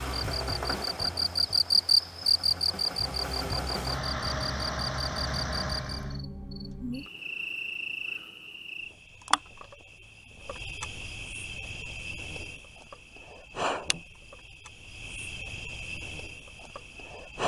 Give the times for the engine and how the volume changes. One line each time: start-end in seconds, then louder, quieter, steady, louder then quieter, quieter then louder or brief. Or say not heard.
0.0-6.2 quieter then louder.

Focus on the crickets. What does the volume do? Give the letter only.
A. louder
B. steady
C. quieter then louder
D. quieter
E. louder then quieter
D.